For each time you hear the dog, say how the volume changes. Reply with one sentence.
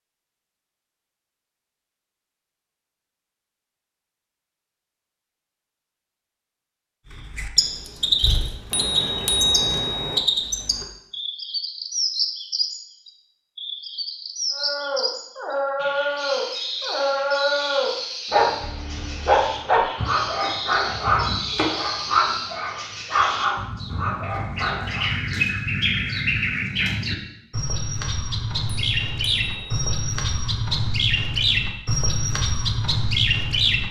You can hear the dog from 14.5 to 25.1 s, at a steady volume.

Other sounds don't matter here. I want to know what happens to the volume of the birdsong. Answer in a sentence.
The volume of the birdsong goes down, then up.